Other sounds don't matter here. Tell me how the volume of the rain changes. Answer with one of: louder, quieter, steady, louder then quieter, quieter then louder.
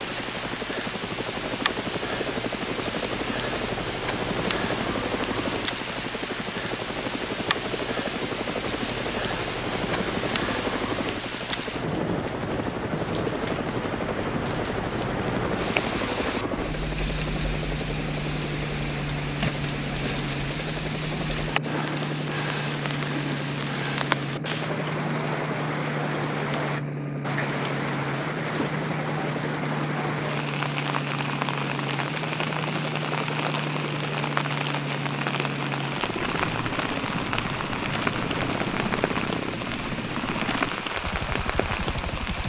steady.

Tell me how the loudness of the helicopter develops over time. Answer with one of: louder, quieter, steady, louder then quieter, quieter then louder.
steady.